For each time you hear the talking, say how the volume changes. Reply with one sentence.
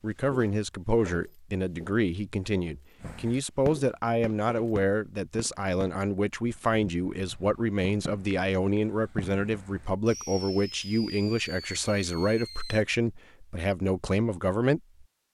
You can hear the talking from 0.0 to 14.8 s, at a steady volume.